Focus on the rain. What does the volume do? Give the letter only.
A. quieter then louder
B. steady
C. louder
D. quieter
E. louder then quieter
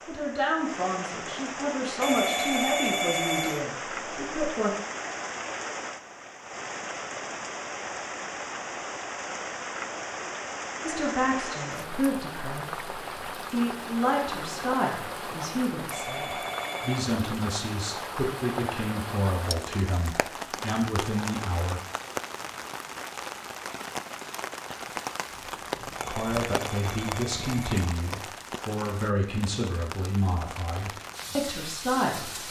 B.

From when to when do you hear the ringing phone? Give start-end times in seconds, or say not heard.
2.0-3.6, 15.9-17.1, 26.1-28.0.